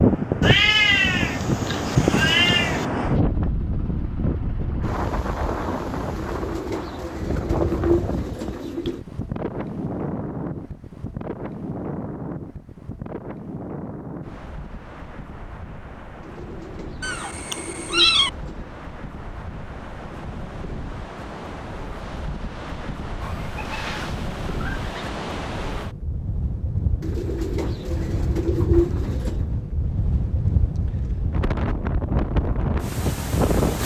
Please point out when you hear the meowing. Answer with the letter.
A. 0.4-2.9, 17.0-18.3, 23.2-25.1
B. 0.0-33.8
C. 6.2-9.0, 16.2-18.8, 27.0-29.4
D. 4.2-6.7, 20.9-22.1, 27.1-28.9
A.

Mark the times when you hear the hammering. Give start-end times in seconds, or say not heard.
not heard.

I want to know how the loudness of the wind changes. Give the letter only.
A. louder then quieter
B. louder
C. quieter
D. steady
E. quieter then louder
E.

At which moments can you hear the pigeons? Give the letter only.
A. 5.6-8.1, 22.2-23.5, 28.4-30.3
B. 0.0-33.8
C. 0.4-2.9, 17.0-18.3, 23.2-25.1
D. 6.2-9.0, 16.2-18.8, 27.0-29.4
D.